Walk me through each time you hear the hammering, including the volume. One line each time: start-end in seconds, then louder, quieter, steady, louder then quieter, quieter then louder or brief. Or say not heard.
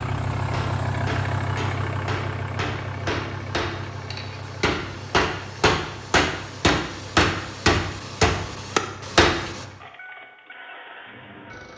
0.3-9.7 louder.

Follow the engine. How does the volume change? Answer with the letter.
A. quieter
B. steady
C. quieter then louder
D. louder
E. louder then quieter
A.